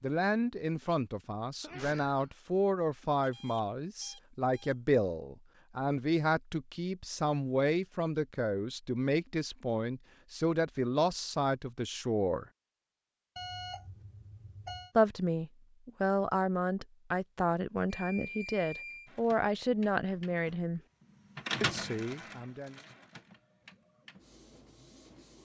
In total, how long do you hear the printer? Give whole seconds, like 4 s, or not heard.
6 s.